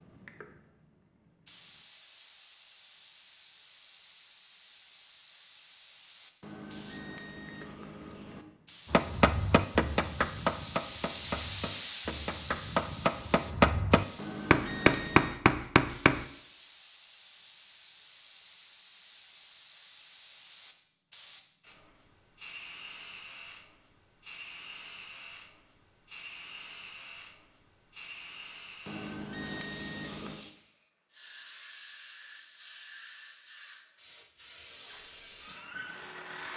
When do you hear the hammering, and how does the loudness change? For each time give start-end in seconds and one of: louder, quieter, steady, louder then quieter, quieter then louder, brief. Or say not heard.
8.9-16.2 quieter then louder.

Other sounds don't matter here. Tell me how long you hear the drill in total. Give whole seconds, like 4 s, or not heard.
2 s.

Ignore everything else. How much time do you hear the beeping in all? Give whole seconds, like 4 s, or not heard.
5 s.